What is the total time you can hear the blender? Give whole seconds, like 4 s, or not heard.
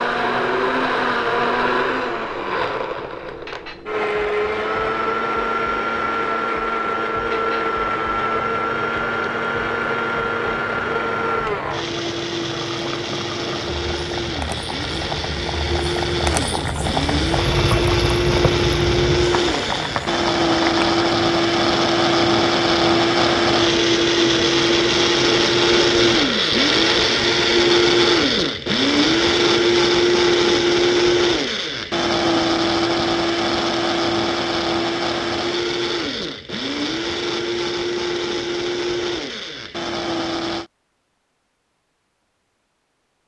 41 s.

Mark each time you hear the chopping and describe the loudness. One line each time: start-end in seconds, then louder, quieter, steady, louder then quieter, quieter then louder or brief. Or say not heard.
not heard.